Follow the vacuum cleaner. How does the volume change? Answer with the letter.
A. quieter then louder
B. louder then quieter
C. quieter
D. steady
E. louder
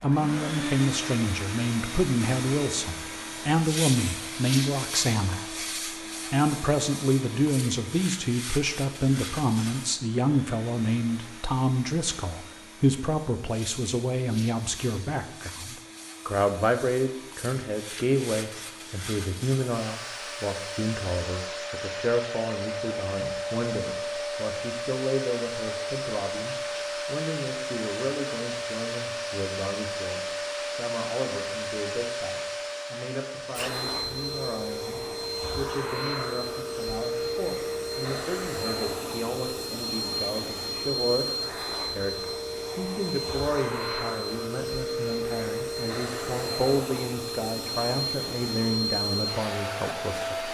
A.